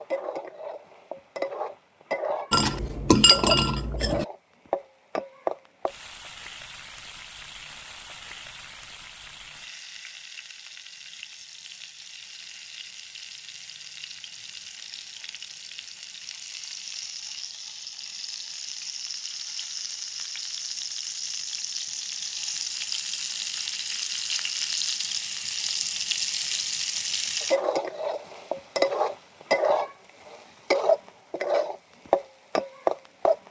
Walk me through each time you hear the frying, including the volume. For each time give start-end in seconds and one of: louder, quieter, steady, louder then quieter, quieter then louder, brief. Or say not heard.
0.0-33.4 quieter then louder.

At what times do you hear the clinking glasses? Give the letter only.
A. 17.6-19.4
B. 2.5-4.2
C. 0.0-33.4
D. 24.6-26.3
B.